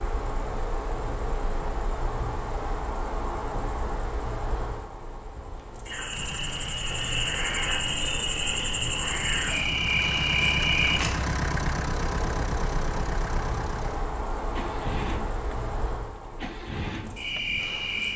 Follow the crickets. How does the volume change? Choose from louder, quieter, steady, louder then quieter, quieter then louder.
louder then quieter.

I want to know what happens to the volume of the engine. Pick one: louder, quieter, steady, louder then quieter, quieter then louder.
louder then quieter.